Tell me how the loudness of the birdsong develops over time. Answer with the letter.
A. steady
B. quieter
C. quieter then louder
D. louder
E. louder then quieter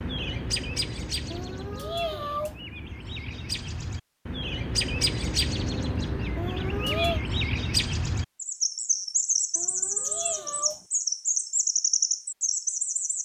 D.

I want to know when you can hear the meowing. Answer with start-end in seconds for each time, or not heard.
1.3-2.6, 6.3-7.2, 9.6-10.8.